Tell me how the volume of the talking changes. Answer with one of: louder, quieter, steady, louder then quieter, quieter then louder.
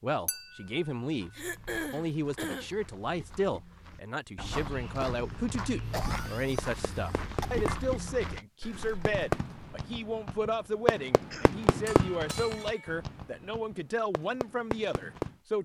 steady.